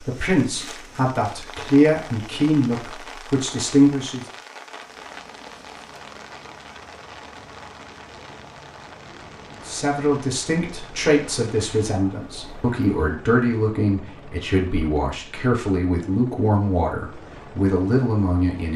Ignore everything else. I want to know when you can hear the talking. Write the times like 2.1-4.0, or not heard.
0.0-4.2, 9.7-18.7.